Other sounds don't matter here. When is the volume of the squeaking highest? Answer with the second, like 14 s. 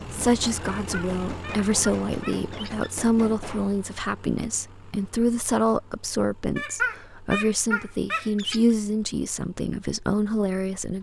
7 s.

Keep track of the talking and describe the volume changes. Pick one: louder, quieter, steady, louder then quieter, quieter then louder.
steady.